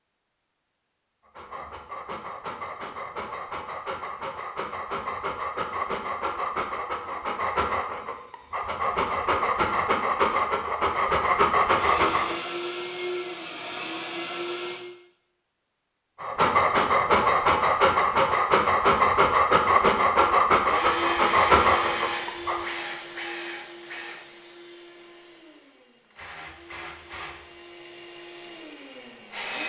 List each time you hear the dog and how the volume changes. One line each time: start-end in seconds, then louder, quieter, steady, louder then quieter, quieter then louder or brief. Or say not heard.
1.2-12.3 louder
16.2-22.7 steady.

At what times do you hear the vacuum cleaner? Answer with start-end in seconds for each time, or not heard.
7.1-14.8, 20.6-29.6.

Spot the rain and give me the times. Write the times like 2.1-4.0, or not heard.
not heard.